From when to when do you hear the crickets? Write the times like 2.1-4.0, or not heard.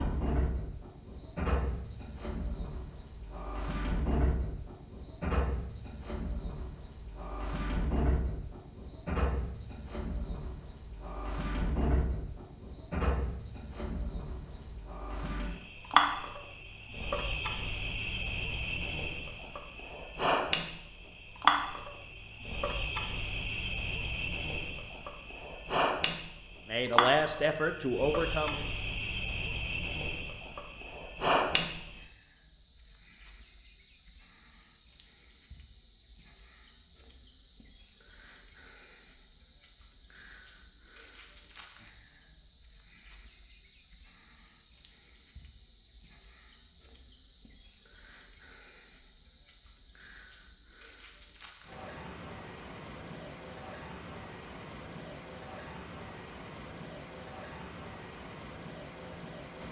0.0-59.6.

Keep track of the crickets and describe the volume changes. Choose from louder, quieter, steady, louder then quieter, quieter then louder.
steady.